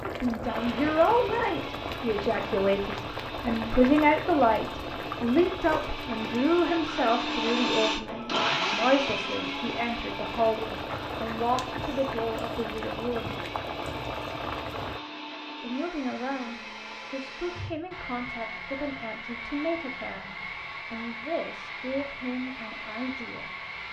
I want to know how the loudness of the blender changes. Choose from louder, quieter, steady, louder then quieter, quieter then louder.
louder then quieter.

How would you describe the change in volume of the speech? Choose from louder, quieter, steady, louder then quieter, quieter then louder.
quieter.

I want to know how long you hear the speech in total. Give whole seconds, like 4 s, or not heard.
21 s.